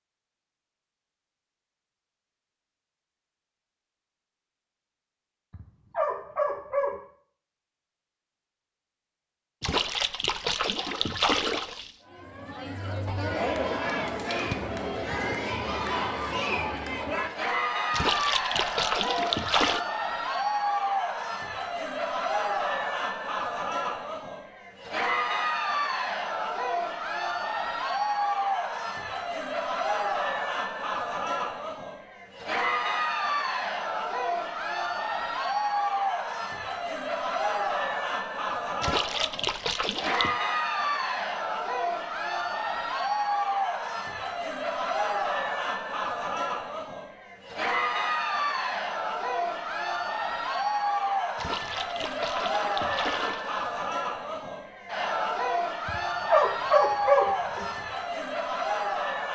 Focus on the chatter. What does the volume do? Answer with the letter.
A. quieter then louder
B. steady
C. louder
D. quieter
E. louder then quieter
B.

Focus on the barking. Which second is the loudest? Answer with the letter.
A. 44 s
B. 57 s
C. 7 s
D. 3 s
B.